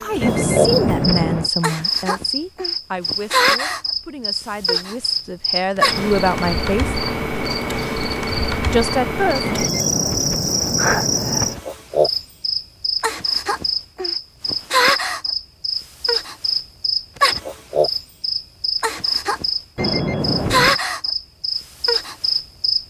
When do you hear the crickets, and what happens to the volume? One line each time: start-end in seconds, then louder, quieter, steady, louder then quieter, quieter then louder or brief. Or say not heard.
0.0-22.8 steady.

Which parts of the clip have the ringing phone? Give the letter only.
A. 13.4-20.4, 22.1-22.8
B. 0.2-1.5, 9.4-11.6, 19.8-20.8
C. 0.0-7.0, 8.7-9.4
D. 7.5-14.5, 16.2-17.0
B.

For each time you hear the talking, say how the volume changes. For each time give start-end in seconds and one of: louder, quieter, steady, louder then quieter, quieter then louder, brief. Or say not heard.
0.0-7.0 quieter then louder
8.7-9.4 brief.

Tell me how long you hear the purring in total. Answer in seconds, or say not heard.
not heard.